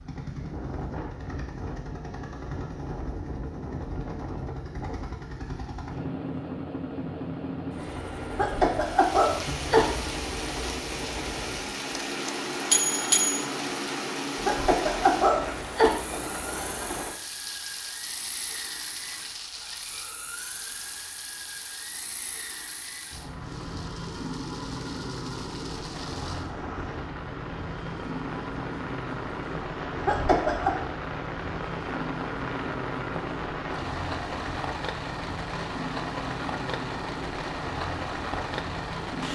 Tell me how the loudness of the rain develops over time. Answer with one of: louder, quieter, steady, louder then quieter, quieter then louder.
quieter then louder.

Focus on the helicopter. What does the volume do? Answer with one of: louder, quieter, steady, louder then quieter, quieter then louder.
quieter then louder.